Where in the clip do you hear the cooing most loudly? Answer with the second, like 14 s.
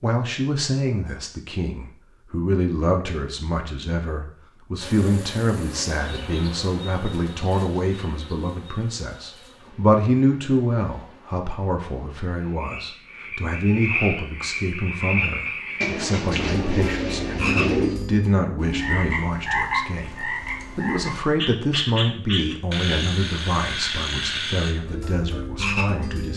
18 s.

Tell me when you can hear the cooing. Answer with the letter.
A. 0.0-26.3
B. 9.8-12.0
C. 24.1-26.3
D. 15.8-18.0
D.